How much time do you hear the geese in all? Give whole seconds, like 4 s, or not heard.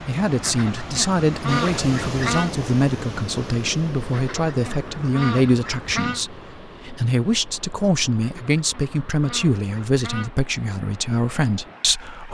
6 s.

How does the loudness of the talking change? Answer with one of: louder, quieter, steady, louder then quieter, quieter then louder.
steady.